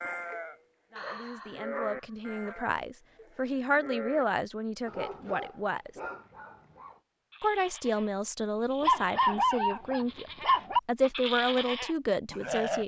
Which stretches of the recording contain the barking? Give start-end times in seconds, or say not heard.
0.9-2.5, 4.8-7.0, 8.8-10.8.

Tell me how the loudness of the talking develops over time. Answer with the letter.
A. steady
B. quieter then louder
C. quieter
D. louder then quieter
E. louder
E.